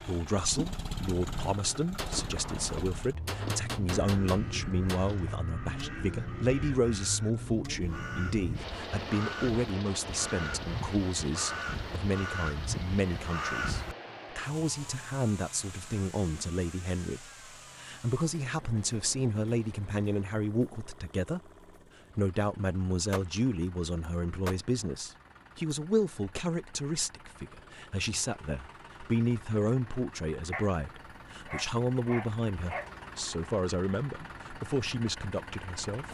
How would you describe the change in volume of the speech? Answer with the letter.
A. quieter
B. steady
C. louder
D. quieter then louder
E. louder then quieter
B.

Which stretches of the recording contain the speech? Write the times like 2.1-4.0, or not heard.
0.0-21.5, 22.1-36.0.